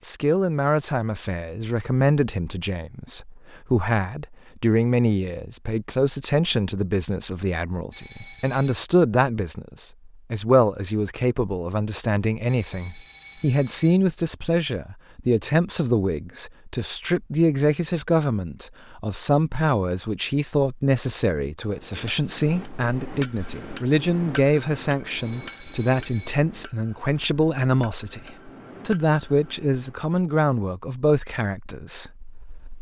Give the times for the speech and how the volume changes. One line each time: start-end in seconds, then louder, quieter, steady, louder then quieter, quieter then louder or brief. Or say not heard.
0.0-32.7 steady.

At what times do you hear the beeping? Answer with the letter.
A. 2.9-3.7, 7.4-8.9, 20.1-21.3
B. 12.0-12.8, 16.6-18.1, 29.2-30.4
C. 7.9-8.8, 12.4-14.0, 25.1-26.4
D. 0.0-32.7
C.